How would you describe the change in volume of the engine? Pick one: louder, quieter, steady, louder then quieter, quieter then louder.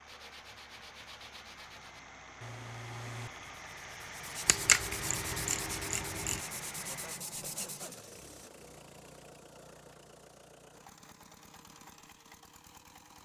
louder then quieter.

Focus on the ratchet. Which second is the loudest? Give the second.
5 s.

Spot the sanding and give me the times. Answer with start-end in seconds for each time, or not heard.
0.1-8.0.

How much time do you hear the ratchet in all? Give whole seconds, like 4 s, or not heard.
2 s.